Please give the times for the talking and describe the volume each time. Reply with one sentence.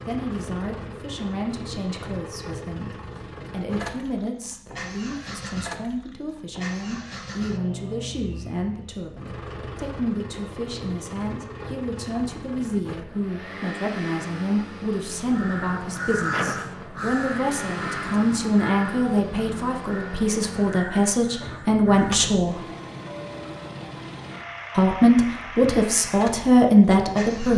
The talking can be heard from 0.1 to 22.6 s, getting louder; and briefly from 24.8 to 27.5 s.